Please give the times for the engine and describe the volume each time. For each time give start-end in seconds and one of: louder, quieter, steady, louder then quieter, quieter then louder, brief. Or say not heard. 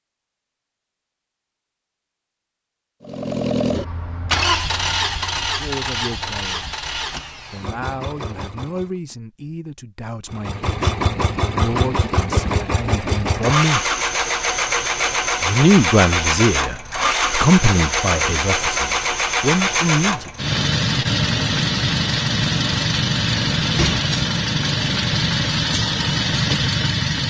3.0-8.9 quieter
10.3-27.2 steady.